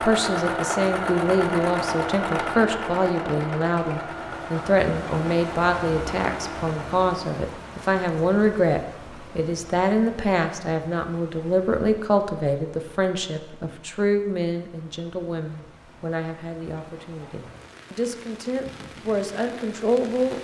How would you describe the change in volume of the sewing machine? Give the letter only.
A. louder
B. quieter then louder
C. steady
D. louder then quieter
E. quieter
E.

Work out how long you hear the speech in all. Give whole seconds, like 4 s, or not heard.
20 s.